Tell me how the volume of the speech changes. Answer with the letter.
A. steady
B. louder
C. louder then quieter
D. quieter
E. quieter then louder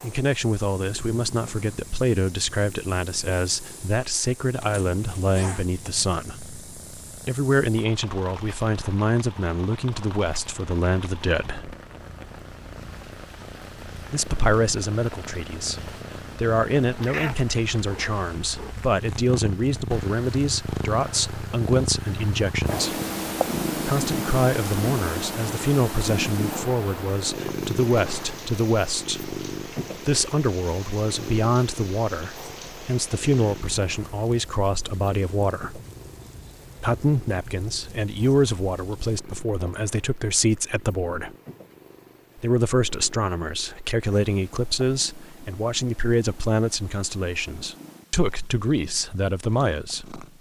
A.